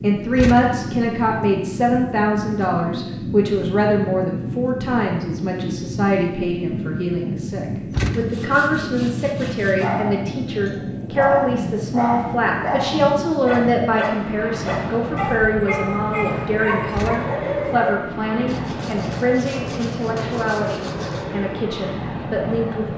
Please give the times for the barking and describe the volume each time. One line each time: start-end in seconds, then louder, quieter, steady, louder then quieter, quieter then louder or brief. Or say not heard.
9.8-18.0 steady.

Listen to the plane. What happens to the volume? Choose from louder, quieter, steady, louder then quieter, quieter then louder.
steady.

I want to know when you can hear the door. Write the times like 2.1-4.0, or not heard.
0.3-0.8, 7.9-8.5, 16.9-17.4.